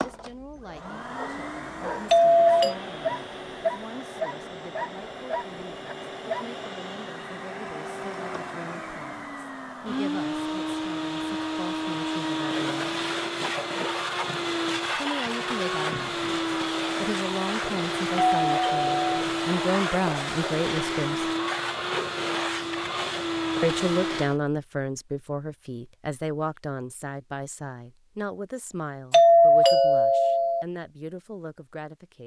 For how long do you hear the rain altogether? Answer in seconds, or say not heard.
not heard.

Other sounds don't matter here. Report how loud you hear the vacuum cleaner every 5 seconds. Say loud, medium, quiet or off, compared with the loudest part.
medium, medium, loud, loud, loud, off, off.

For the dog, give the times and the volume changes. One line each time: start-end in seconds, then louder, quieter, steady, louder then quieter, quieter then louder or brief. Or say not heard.
0.0-6.5 louder then quieter.